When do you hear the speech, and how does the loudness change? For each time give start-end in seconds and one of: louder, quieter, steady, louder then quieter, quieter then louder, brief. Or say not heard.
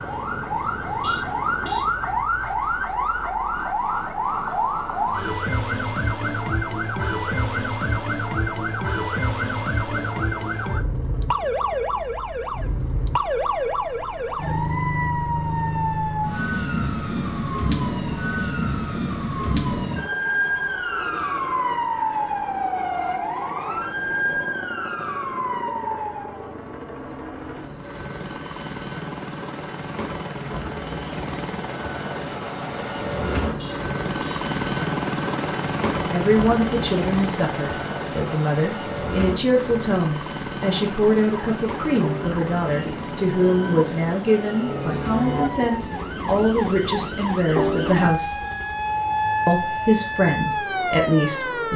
36.1-48.4 steady
49.5-51.7 brief.